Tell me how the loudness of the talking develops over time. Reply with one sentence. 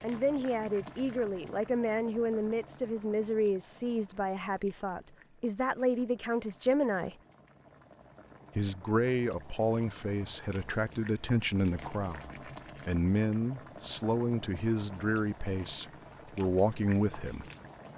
The volume of the talking stays about the same.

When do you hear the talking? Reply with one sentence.
The talking can be heard from 0.0 to 7.2 s and from 8.6 to 17.4 s.